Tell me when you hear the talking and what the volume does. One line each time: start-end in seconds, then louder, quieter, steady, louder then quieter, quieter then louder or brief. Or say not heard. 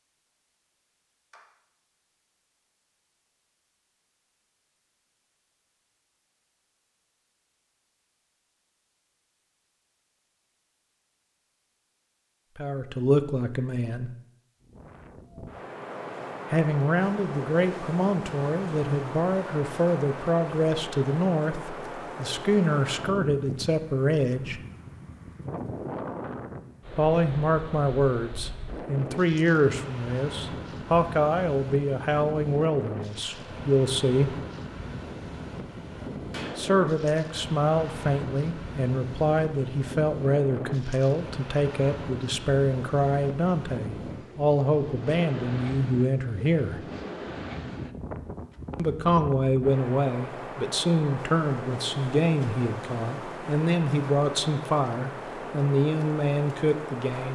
12.6-14.1 brief
16.5-24.6 steady
26.9-34.4 steady
36.5-46.8 steady
48.8-57.3 steady.